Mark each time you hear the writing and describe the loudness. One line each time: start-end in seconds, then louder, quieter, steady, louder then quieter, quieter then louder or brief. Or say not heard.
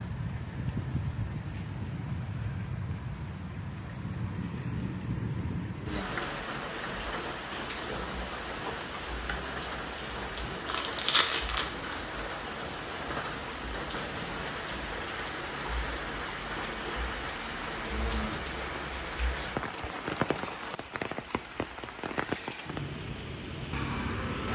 not heard.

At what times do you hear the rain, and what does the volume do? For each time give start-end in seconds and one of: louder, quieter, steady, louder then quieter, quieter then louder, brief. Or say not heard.
0.0-24.5 steady.